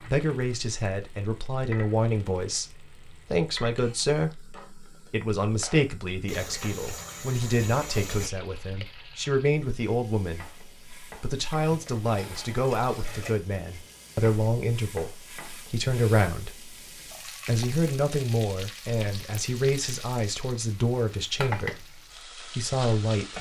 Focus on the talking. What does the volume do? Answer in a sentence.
The loudness of the talking stays about the same.